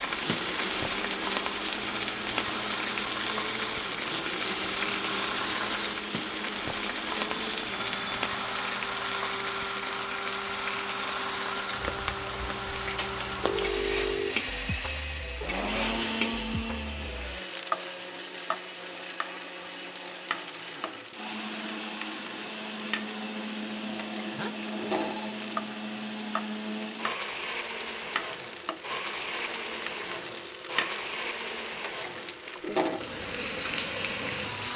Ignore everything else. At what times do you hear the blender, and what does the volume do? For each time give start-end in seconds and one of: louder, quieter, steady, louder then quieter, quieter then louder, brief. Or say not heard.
0.0-34.7 steady.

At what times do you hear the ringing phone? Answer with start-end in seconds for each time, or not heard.
7.2-8.3, 13.4-14.3, 23.9-25.4.